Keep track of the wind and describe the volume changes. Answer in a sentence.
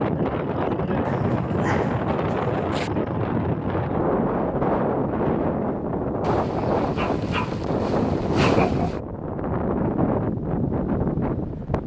The loudness of the wind stays about the same.